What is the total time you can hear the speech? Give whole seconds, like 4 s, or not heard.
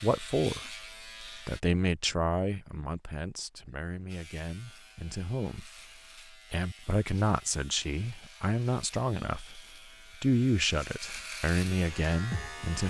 11 s.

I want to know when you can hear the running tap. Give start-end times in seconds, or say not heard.
not heard.